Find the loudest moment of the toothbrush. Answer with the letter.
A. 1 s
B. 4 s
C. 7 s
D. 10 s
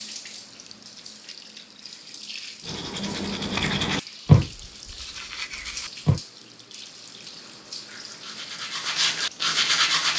B.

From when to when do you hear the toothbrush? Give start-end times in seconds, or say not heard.
2.6-6.2, 7.8-10.1.